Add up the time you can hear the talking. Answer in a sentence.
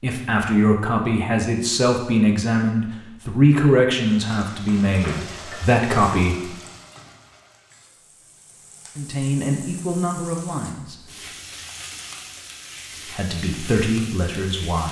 You can hear the talking for 10 seconds altogether.